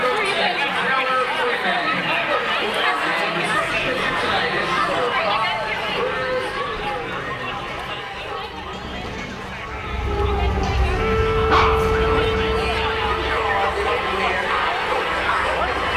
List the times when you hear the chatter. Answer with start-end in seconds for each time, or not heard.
0.0-15.9.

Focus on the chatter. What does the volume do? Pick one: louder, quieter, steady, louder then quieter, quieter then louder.
quieter then louder.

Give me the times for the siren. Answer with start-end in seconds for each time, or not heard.
9.7-15.9.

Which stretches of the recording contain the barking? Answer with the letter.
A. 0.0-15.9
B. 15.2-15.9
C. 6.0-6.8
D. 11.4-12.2
D.